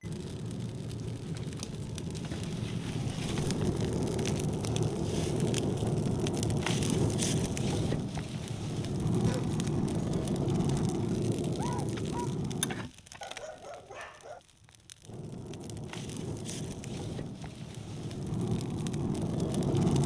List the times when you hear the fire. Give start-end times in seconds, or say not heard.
0.0-20.0.